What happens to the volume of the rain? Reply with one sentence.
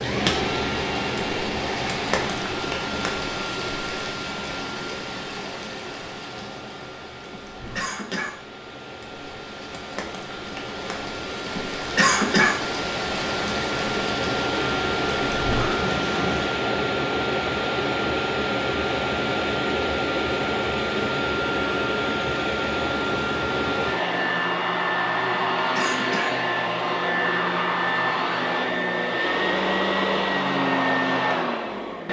The loudness of the rain goes down, then up.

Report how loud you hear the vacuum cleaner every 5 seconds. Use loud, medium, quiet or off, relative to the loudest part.
medium, quiet, medium, loud, loud, loud, loud.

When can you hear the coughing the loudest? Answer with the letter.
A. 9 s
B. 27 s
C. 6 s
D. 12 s
D.